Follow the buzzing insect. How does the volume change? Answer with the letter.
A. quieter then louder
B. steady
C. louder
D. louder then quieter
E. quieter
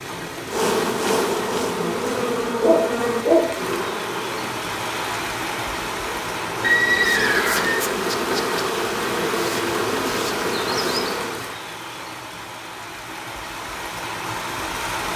A.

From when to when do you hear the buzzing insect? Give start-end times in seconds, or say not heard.
0.0-11.6.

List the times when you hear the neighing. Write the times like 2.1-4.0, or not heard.
6.6-7.8.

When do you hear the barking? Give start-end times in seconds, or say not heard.
2.6-3.5.